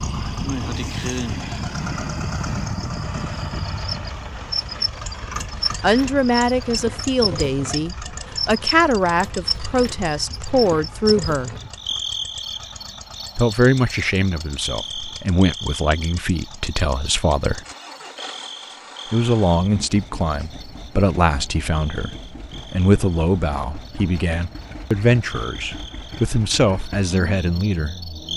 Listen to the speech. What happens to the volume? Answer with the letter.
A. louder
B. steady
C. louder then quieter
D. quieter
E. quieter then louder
B.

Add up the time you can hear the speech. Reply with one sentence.
You can hear the speech for 19 seconds altogether.